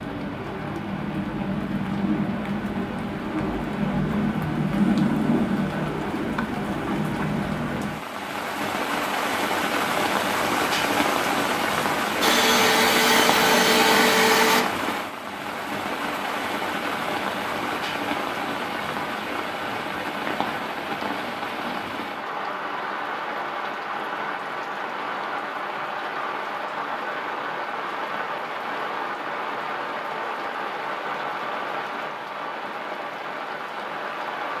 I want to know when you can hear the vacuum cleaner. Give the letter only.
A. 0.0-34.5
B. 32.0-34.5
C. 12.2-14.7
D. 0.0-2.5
C.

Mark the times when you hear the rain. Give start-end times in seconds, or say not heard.
0.0-34.5.